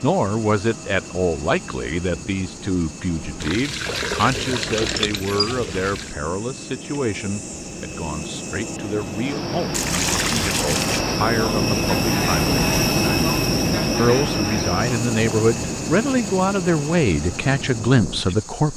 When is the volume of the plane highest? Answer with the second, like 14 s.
13 s.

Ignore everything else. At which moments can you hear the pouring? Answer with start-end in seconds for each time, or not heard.
3.4-6.2, 9.7-11.1.